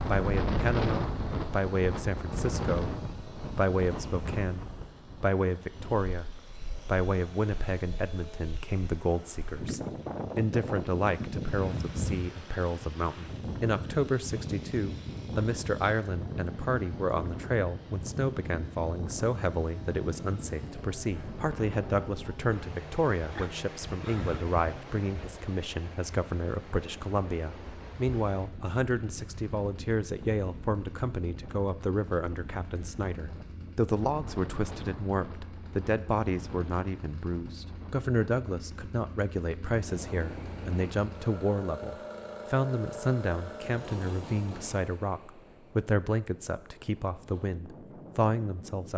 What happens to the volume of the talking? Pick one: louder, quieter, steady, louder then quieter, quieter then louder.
steady.